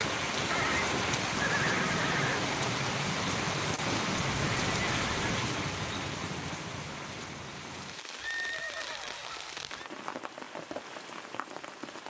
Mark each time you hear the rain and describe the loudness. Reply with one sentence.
The rain can be heard from 0.0 to 12.0 s, getting quieter.